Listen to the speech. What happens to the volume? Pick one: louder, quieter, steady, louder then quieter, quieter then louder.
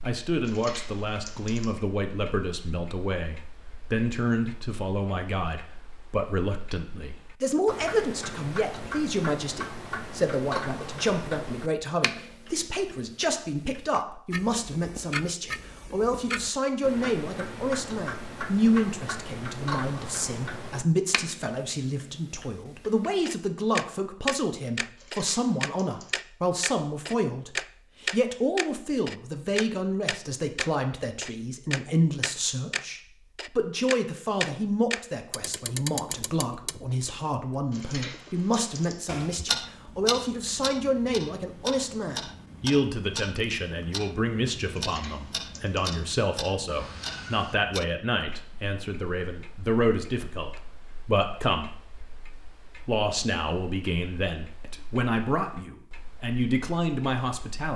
steady.